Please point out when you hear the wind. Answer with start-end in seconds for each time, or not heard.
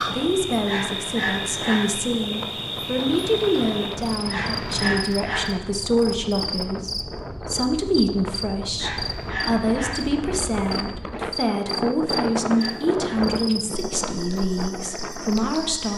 0.0-15.9.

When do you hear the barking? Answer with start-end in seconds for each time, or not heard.
0.7-1.9, 4.2-5.6, 8.8-10.1, 12.1-13.3.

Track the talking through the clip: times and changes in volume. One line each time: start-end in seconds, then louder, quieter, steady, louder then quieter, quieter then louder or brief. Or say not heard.
0.1-15.9 steady.